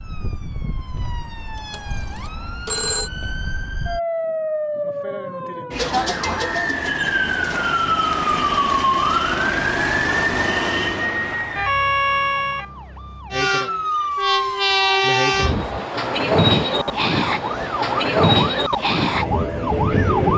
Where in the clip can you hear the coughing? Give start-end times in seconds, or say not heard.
not heard.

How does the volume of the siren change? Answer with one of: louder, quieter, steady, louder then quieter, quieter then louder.
louder then quieter.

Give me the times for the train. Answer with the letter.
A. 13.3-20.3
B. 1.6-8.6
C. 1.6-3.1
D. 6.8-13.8
A.